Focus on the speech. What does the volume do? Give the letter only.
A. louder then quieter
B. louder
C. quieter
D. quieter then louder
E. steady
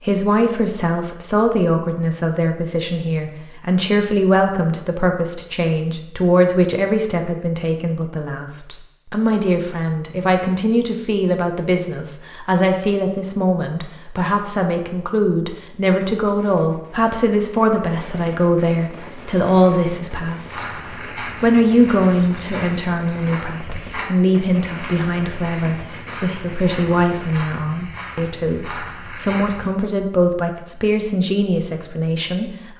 E.